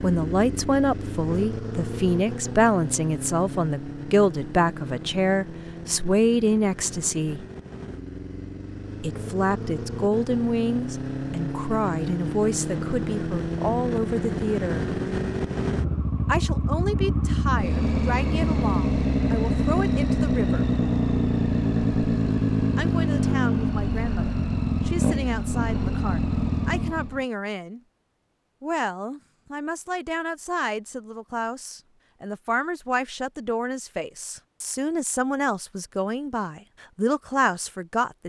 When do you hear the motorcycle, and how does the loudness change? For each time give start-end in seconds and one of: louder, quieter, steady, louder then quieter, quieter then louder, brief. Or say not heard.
0.0-27.2 louder.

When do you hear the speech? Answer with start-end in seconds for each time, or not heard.
0.0-7.5, 9.0-14.8, 16.2-20.6, 22.8-27.8, 28.6-38.2.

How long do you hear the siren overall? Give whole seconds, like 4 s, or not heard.
not heard.